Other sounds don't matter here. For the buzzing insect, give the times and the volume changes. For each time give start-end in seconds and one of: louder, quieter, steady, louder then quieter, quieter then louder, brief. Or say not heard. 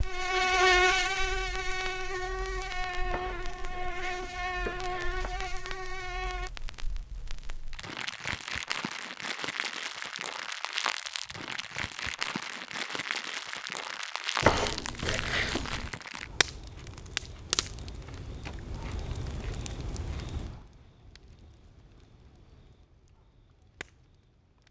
0.0-6.5 quieter.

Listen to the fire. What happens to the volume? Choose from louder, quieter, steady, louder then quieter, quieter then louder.
louder then quieter.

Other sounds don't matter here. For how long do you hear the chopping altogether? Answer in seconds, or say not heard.
4 s.